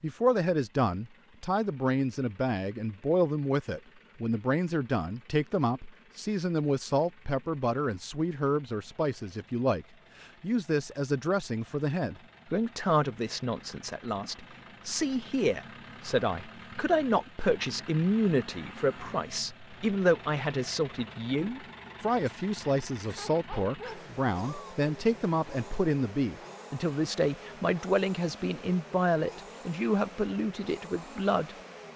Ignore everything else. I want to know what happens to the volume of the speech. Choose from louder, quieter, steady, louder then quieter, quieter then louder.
steady.